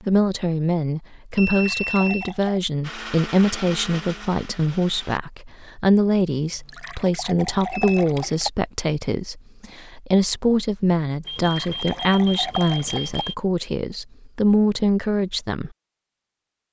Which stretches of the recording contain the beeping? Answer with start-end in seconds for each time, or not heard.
1.4-2.4, 7.7-8.3, 11.2-13.3.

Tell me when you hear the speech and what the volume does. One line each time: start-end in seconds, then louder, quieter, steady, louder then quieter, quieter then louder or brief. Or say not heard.
0.1-15.7 steady.